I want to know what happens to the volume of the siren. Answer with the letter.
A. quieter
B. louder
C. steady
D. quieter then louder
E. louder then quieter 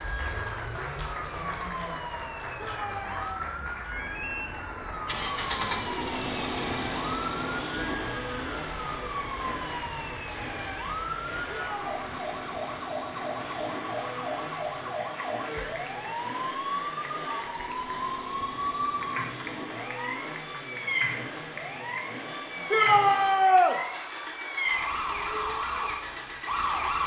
B.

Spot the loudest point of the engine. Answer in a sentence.
The loudest moment of the engine is at 6 seconds.